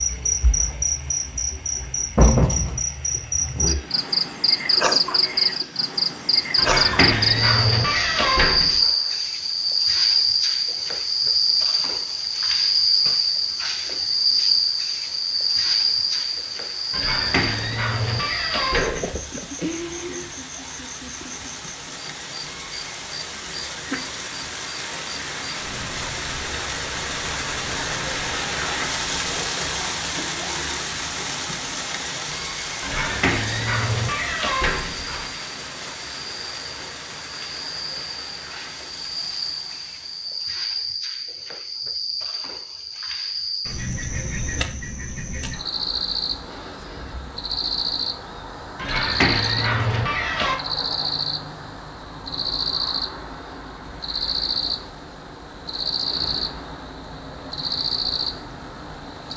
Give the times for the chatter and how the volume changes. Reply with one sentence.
You can't hear the chatter here.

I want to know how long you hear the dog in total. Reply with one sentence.
You can hear the dog for 9 seconds altogether.